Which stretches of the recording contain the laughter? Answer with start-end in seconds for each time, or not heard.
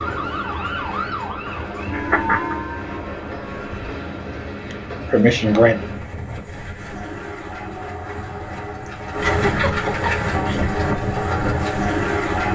1.9-2.5, 4.6-5.8, 8.8-10.7.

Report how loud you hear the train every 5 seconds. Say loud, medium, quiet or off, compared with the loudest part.
medium, medium, loud.